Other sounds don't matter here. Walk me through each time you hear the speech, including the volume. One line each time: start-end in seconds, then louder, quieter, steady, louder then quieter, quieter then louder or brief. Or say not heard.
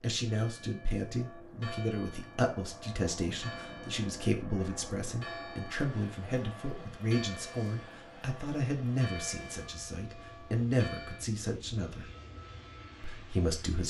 0.0-12.1 steady
13.0-13.8 brief.